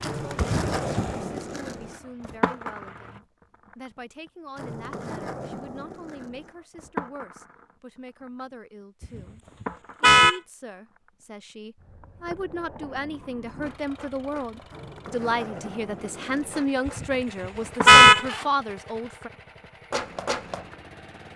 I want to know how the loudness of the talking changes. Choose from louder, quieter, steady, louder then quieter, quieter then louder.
louder.